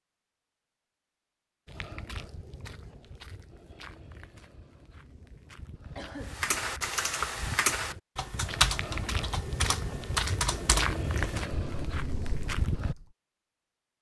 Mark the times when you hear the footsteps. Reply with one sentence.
The footsteps can be heard from 1.6 to 12.9 s.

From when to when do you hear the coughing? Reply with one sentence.
You can hear the coughing from 6.0 to 6.5 s.